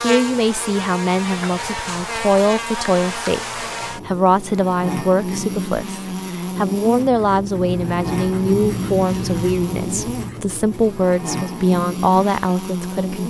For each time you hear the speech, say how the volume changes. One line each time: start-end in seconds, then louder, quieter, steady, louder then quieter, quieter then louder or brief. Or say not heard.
0.0-13.2 steady.